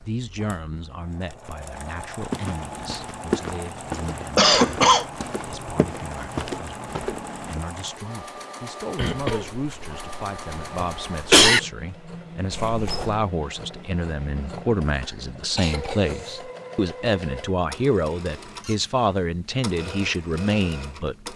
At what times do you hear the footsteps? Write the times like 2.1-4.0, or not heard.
2.3-7.6.